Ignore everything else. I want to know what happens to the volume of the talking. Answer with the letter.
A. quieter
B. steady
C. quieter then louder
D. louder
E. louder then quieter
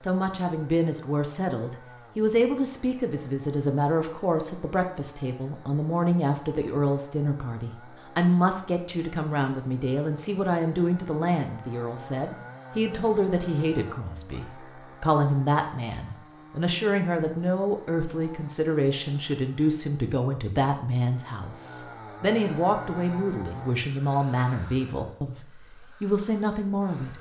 B.